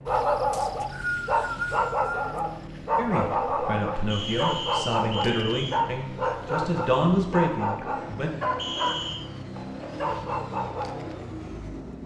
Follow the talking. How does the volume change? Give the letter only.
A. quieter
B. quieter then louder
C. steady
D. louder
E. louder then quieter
D.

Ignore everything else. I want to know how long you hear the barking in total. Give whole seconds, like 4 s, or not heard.
11 s.